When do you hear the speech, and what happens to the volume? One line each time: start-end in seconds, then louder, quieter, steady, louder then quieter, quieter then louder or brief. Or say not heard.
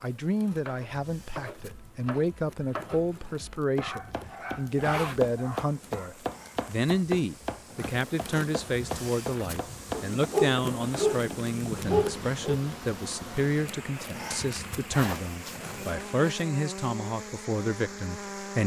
0.0-18.6 steady.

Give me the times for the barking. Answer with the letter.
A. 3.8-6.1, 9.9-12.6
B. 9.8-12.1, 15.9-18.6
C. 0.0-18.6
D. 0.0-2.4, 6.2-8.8
A.